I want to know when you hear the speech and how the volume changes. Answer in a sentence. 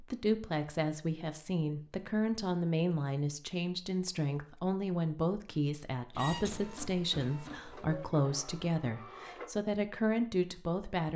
You can hear the speech from 0.0 to 11.1 s, at a steady volume.